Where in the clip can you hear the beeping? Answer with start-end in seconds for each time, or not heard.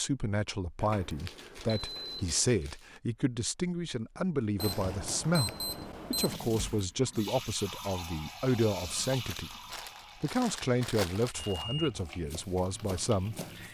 0.8-2.4, 4.5-6.4, 11.3-12.0.